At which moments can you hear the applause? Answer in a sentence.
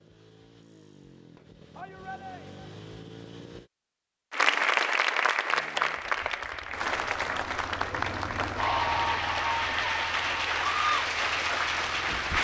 You can hear the applause from 4.3 to 12.4 s.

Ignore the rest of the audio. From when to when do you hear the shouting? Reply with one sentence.
The shouting can be heard from 1.8 to 2.7 s.